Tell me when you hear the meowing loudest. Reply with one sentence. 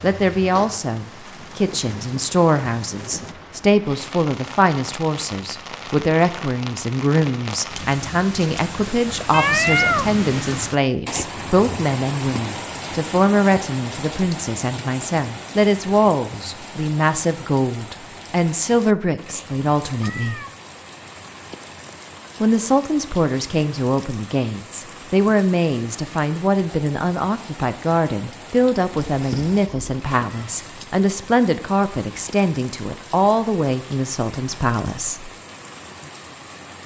The loudest moment of the meowing is at 10 seconds.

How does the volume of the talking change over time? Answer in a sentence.
The loudness of the talking stays about the same.